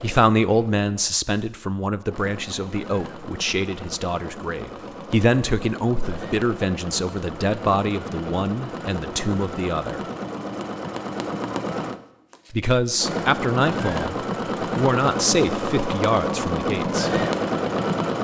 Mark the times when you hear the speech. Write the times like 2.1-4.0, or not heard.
0.0-10.0, 12.5-17.2.